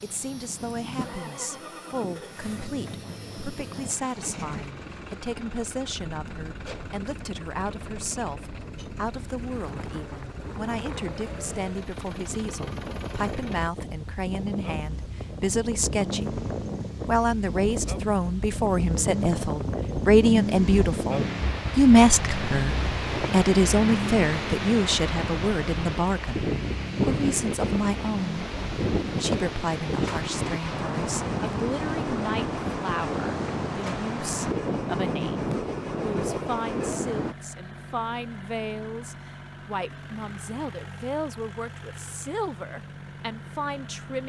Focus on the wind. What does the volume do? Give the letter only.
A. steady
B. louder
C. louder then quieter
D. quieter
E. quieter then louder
B.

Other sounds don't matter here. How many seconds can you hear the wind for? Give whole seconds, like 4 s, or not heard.
37 s.